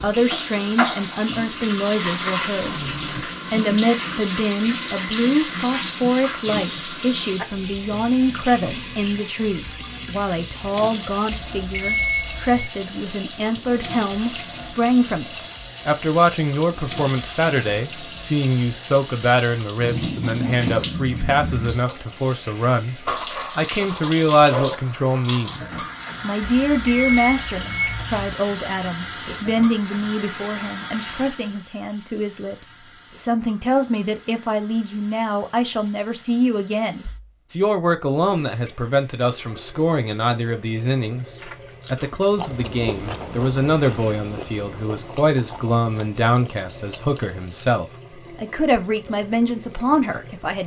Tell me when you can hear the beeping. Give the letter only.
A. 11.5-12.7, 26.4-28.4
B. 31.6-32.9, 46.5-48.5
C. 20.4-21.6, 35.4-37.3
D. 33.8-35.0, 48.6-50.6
A.